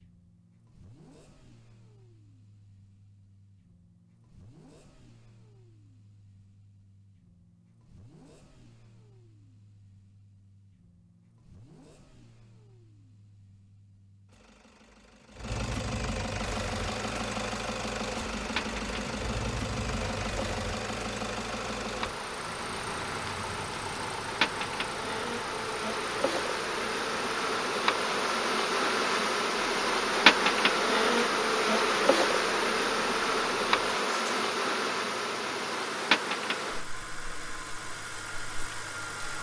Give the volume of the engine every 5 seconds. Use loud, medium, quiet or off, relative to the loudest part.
quiet, quiet, quiet, loud, loud, medium, medium, medium.